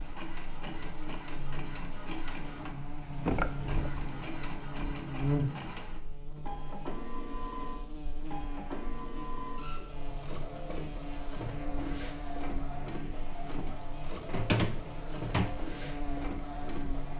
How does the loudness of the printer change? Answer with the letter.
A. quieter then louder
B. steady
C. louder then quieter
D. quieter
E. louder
B.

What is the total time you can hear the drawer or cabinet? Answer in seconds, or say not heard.
3 s.